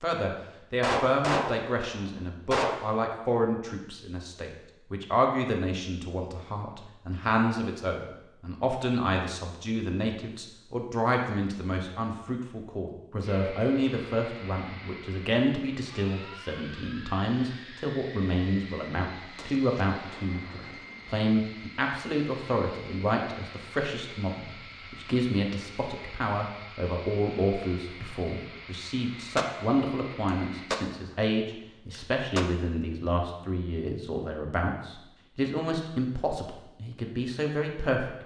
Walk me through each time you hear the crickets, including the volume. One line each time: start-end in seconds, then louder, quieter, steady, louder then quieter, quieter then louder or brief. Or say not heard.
not heard.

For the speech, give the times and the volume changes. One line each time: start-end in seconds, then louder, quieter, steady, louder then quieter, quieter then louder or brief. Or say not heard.
0.0-38.2 steady.